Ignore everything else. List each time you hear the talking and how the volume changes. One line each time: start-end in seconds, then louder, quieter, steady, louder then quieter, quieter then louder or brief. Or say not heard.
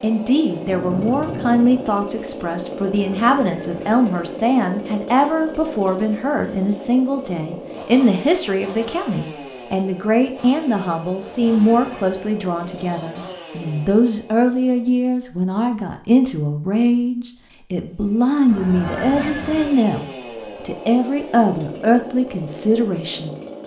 0.0-23.6 steady.